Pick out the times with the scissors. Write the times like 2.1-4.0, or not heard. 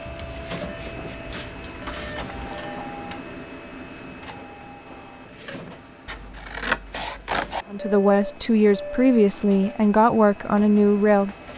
0.1-2.6, 6.0-7.7.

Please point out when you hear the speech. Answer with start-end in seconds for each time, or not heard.
7.7-11.3.